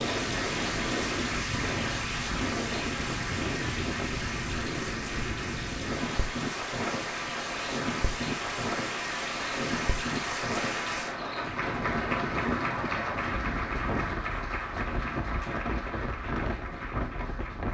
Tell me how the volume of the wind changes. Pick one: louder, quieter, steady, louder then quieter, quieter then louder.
steady.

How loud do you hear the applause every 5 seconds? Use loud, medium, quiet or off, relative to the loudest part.
loud, loud, loud, medium.